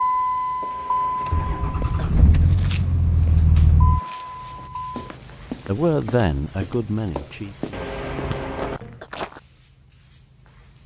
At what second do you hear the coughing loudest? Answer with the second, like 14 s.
8 s.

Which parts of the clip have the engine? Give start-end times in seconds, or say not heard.
0.0-5.0.